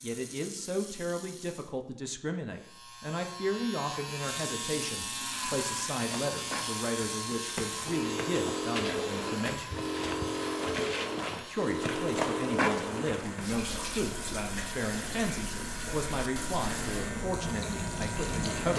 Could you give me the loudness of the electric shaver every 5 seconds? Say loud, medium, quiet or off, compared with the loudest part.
loud, loud, medium, loud.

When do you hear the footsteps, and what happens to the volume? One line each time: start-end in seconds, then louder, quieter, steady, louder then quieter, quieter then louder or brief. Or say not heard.
6.0-13.5 louder.